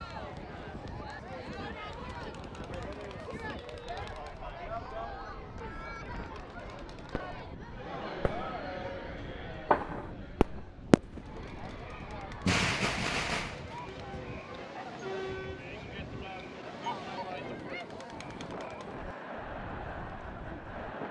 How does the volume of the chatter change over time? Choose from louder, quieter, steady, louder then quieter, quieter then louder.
steady.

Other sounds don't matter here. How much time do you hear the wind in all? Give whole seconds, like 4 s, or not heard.
21 s.